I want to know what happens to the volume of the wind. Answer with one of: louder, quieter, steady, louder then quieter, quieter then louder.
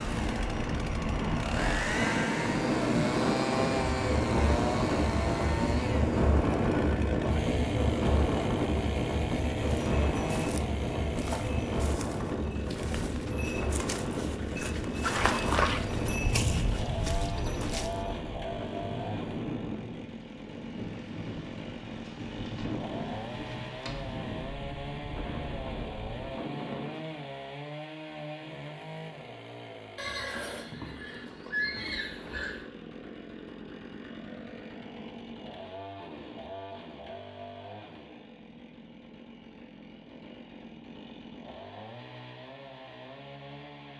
quieter.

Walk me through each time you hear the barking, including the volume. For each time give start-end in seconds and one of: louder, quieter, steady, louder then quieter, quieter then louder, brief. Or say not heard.
not heard.